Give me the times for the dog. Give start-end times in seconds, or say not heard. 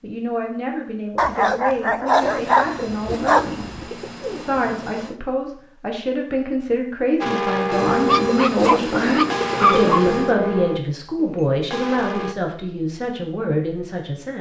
1.1-3.8, 8.1-10.1.